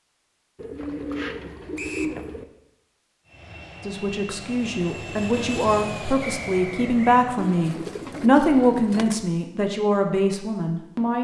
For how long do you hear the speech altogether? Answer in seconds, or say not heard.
7 s.